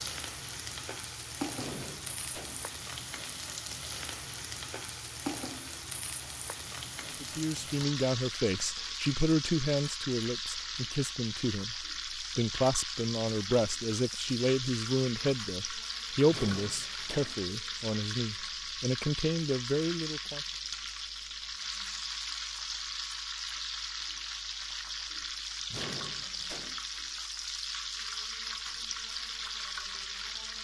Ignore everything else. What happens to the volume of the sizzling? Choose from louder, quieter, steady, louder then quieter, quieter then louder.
steady.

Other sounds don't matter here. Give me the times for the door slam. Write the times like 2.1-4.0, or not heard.
1.6-2.8, 16.3-17.4, 25.7-26.8.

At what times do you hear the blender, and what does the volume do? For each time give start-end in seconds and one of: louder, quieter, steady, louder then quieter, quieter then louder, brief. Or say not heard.
not heard.